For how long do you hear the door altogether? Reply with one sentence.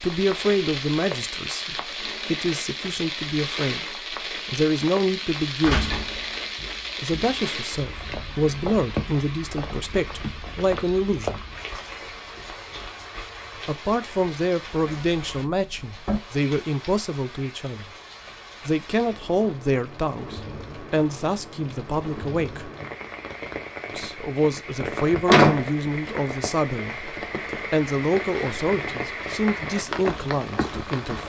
You can hear the door for 4 seconds altogether.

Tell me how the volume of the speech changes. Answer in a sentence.
The volume of the speech stays about the same.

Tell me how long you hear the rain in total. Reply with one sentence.
The rain can be heard for 31 seconds in total.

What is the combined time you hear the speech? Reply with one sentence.
You can hear the speech for 26 seconds altogether.